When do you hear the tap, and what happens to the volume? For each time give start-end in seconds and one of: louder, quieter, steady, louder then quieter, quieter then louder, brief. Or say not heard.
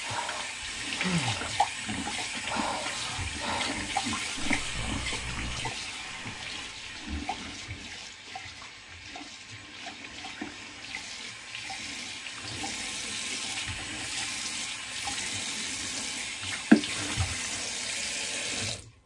0.0-18.9 quieter then louder.